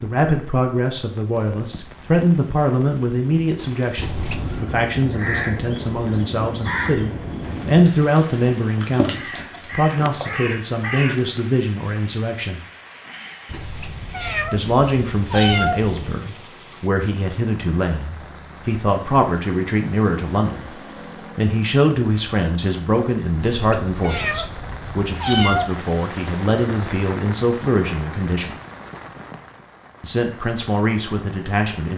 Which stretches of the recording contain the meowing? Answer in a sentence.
The meowing can be heard from 4.0 to 4.7 s, from 13.4 to 16.2 s and from 23.4 to 25.8 s.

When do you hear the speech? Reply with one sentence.
The speech can be heard from 0.0 to 12.6 s, from 14.5 to 28.6 s and from 30.0 to 31.9 s.